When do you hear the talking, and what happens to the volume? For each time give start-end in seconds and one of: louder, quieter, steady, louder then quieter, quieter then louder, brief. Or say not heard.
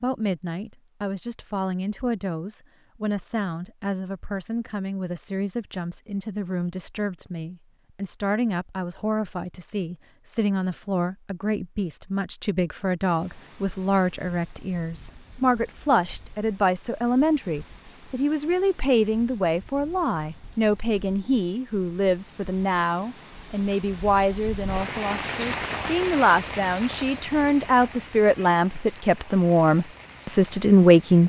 0.0-31.2 louder.